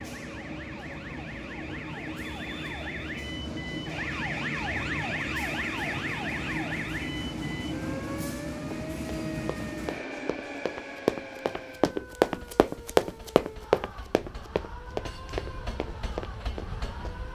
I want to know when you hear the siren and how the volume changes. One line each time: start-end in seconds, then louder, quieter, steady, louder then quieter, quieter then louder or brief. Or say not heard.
0.0-17.3 louder then quieter.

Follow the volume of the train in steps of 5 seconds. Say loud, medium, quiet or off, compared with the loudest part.
loud, loud, medium, medium.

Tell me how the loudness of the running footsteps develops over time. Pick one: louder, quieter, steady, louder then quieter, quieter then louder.
louder then quieter.